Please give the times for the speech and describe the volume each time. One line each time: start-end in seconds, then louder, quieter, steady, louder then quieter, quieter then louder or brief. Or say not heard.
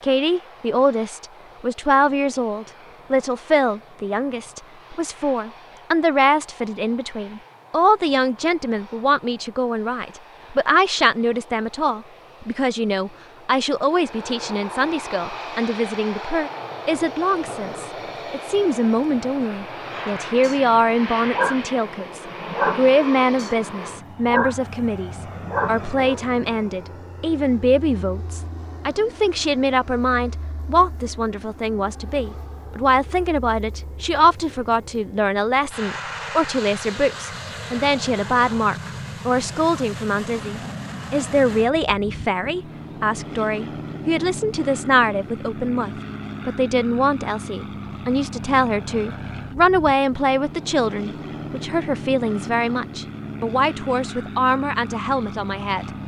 0.0-55.9 steady.